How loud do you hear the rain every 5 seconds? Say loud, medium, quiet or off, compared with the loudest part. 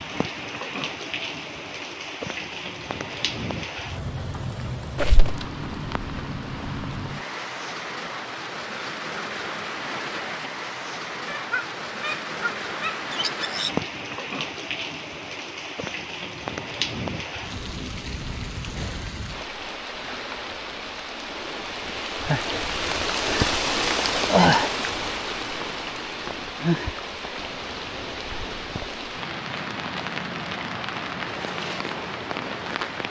medium, medium, medium, medium, loud, medium, medium.